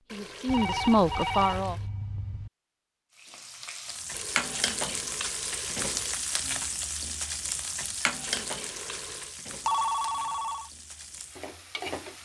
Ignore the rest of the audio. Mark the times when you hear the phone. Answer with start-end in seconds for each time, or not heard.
0.5-2.5, 9.7-10.7.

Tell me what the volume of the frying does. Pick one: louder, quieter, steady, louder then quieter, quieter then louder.
quieter.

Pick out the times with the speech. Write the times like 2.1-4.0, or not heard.
0.1-1.8.